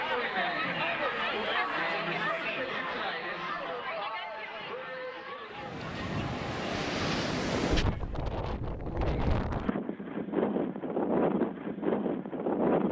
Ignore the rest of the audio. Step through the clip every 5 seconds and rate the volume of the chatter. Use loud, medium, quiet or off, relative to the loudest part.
loud, medium, off.